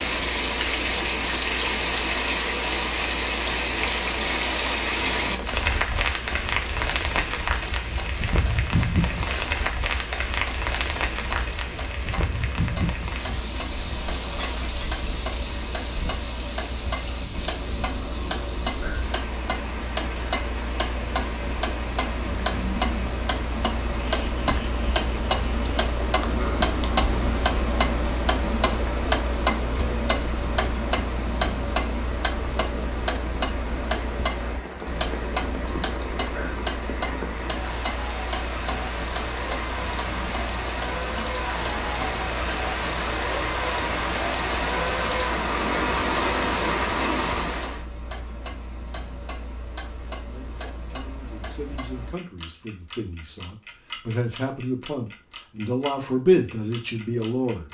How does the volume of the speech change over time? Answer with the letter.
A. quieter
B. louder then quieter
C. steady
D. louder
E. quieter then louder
D.